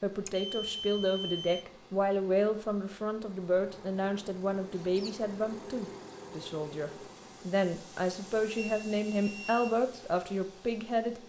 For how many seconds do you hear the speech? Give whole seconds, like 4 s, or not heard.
11 s.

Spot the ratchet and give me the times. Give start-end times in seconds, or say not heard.
not heard.